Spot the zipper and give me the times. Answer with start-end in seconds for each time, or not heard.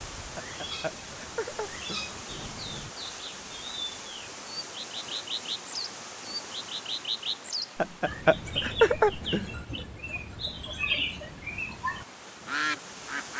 not heard.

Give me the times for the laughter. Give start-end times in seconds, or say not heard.
0.3-2.0, 7.8-9.5.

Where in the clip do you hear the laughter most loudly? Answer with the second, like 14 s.
9 s.